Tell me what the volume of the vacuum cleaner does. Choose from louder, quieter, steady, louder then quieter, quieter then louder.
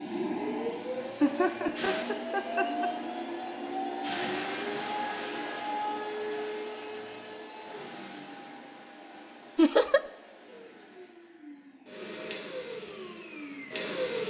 quieter then louder.